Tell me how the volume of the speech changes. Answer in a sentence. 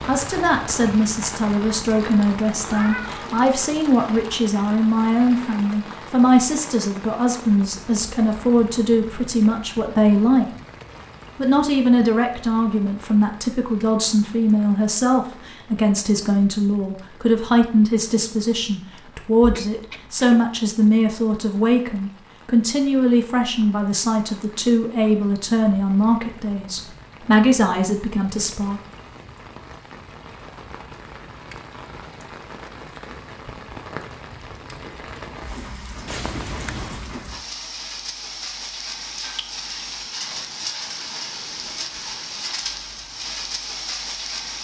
The loudness of the speech stays about the same.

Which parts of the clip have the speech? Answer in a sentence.
You can hear the speech from 0.1 to 10.5 s and from 11.3 to 28.8 s.